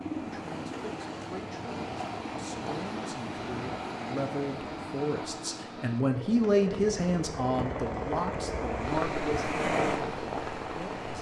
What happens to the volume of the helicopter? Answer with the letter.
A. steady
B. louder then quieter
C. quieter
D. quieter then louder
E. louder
E.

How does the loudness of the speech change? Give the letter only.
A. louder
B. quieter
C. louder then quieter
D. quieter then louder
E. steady
C.